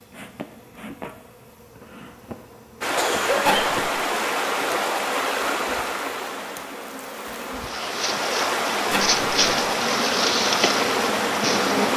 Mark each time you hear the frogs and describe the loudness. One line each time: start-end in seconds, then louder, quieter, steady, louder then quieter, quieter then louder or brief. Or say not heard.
not heard.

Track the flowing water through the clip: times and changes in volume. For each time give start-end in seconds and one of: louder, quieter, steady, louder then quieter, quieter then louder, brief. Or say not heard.
2.8-11.9 quieter then louder.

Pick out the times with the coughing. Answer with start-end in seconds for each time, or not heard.
3.0-3.7.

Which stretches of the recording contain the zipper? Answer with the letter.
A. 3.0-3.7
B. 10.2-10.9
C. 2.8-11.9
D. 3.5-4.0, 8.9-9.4
D.